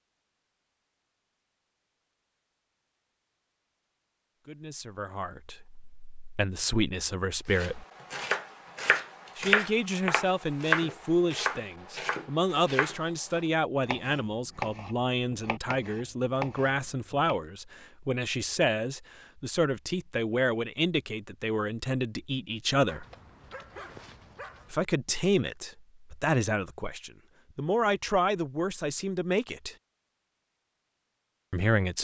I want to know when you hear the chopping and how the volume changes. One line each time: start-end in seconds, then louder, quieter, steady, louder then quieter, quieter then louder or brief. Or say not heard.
7.5-17.4 quieter.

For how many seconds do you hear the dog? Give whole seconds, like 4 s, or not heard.
2 s.